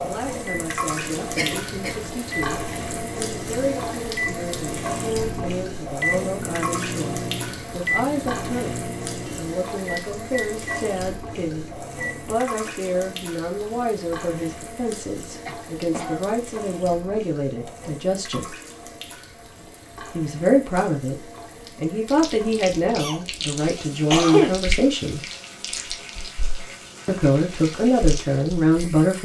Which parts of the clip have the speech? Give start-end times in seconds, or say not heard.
0.0-18.6, 20.1-25.2, 27.1-29.2.